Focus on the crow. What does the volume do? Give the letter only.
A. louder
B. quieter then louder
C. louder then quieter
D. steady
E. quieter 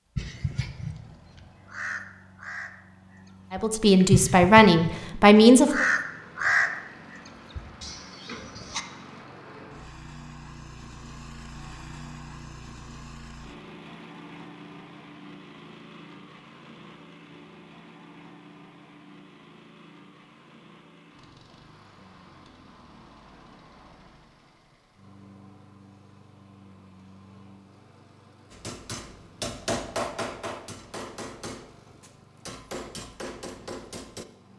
C.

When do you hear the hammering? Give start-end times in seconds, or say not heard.
28.5-34.2.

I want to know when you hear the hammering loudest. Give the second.
30 s.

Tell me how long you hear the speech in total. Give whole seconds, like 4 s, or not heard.
2 s.